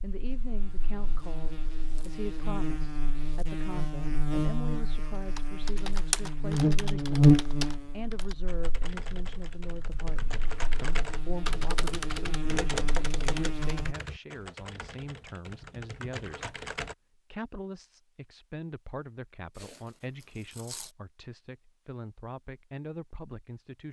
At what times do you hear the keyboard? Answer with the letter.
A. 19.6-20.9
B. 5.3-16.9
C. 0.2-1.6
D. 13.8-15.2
B.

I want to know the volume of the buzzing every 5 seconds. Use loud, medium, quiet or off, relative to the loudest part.
medium, loud, quiet, off, off.